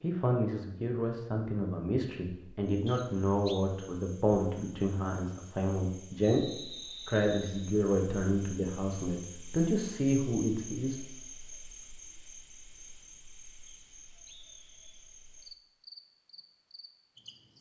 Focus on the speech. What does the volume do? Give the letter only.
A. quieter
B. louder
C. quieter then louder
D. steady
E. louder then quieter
D.